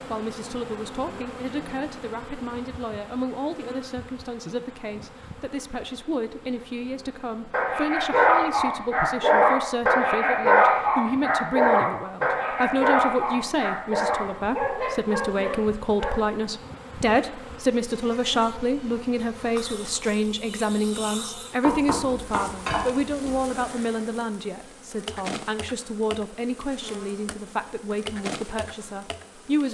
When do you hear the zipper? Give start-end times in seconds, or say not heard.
not heard.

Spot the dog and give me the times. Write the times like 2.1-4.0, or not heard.
7.5-16.2.